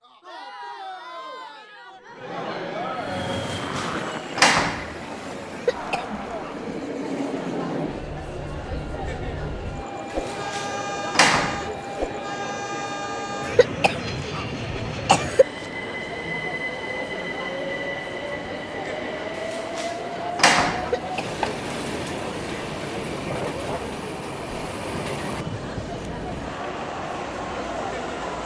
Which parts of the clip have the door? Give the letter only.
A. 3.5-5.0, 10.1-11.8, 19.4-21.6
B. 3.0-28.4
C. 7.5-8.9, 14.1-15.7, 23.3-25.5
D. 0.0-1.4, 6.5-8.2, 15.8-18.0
A.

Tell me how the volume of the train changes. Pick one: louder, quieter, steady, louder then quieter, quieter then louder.
steady.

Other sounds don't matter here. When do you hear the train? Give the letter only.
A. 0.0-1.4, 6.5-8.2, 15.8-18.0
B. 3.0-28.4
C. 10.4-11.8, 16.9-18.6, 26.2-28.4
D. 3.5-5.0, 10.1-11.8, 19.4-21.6
B.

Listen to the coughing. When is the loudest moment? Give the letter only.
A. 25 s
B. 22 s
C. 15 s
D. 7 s
C.